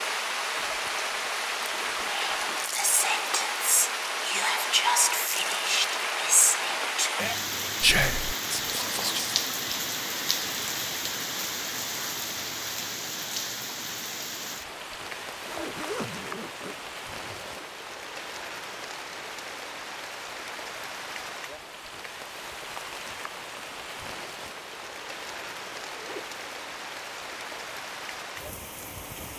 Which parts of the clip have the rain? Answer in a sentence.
The rain can be heard from 0.0 to 29.3 s.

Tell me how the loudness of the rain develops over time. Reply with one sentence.
The loudness of the rain goes down.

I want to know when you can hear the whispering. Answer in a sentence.
The whispering can be heard from 2.0 to 9.3 s.